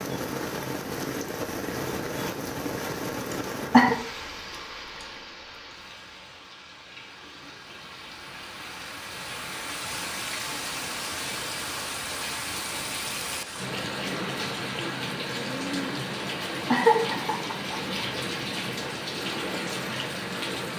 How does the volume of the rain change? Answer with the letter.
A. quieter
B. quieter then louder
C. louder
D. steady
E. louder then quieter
B.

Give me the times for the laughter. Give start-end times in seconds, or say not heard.
3.3-4.0, 16.7-17.8.